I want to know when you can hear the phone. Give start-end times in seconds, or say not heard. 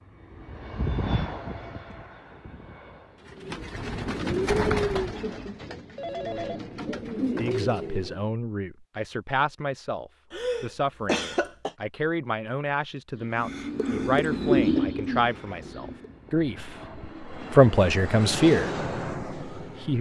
6.0-6.6.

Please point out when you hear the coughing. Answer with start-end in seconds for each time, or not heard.
10.3-11.7.